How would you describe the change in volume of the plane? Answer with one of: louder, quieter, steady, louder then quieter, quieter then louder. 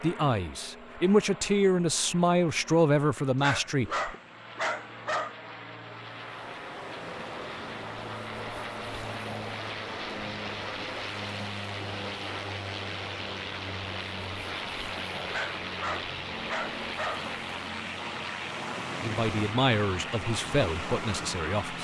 louder.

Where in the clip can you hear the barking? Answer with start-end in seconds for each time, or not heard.
3.4-5.3, 15.3-17.3.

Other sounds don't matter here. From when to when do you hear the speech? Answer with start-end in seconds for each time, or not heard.
0.0-4.0, 19.0-21.7.